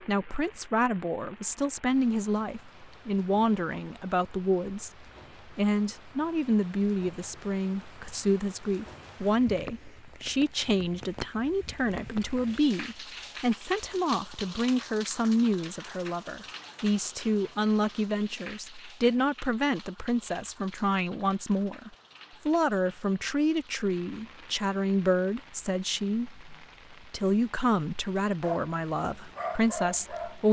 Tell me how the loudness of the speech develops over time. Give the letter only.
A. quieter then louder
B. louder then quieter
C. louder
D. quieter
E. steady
E.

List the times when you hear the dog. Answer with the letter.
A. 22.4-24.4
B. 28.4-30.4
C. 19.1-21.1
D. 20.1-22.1
B.